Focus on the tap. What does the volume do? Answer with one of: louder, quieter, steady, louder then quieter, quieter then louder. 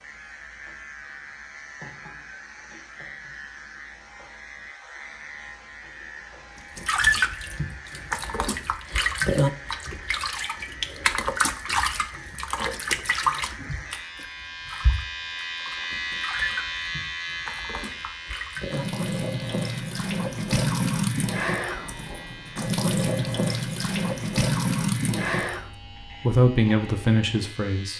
quieter then louder.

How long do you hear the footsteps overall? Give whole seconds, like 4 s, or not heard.
not heard.